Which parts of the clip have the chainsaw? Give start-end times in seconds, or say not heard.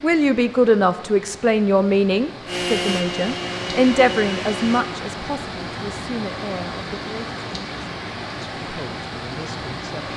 2.5-4.8.